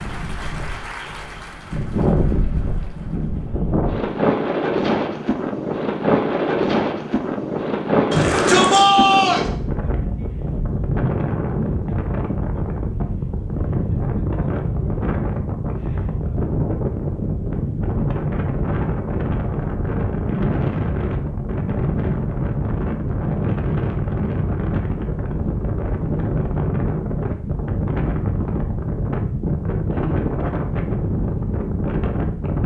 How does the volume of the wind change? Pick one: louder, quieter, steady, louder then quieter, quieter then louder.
steady.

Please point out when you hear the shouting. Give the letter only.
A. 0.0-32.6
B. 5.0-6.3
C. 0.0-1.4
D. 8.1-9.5
D.